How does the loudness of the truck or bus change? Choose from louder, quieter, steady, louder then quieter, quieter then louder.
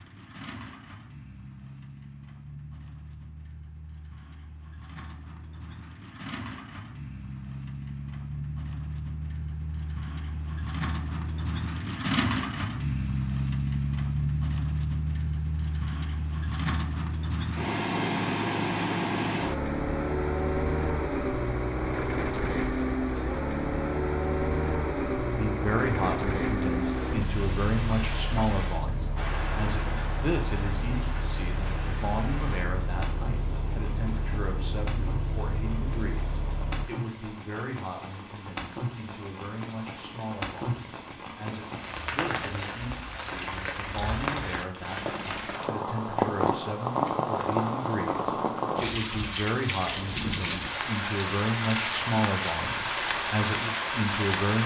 louder then quieter.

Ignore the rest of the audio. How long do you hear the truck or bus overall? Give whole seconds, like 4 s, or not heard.
37 s.